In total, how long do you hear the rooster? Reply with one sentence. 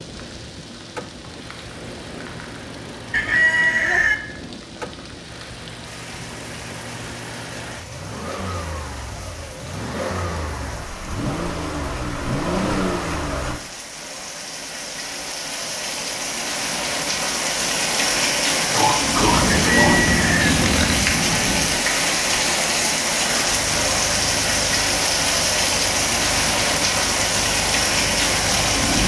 You can hear the rooster for 2 seconds altogether.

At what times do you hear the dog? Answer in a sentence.
You can't hear the dog here.